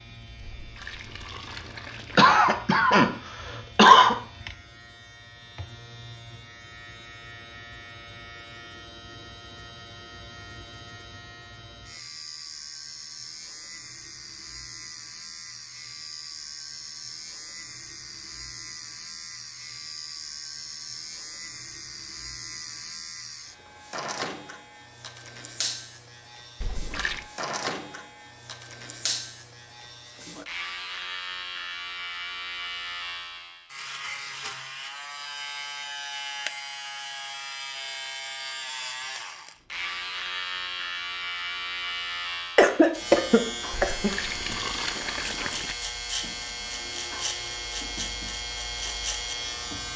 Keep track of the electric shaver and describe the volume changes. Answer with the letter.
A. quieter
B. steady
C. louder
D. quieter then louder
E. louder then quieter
C.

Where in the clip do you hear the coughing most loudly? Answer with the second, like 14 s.
4 s.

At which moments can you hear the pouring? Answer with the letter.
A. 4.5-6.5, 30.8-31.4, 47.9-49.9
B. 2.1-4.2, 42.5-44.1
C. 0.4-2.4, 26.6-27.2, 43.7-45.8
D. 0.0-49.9
C.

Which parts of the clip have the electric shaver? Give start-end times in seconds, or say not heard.
0.0-49.9.